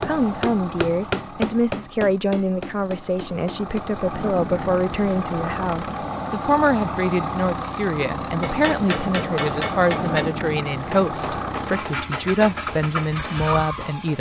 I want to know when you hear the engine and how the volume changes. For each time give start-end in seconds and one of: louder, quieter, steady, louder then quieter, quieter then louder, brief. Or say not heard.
0.0-14.1 louder.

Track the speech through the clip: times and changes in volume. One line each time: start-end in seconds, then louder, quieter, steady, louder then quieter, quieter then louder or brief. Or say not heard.
0.0-14.1 steady.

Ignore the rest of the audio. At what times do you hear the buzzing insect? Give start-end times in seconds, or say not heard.
not heard.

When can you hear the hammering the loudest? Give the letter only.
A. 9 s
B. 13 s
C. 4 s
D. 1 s
D.